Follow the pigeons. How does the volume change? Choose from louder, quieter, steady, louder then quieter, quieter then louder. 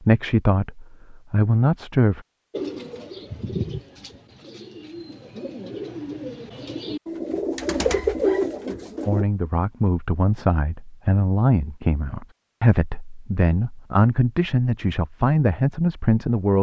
quieter then louder.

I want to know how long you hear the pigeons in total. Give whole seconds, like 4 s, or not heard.
7 s.